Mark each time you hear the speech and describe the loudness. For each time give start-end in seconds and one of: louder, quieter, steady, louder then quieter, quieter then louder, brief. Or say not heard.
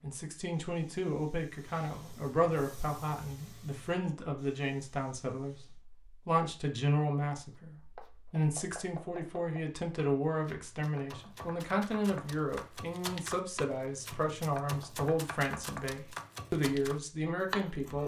0.0-18.0 steady.